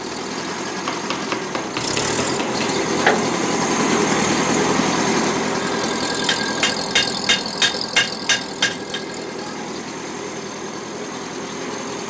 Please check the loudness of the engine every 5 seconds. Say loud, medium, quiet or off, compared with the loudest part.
loud, loud, medium.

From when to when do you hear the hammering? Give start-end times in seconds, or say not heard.
0.8-2.9, 6.2-9.0.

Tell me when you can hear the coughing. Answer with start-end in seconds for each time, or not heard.
not heard.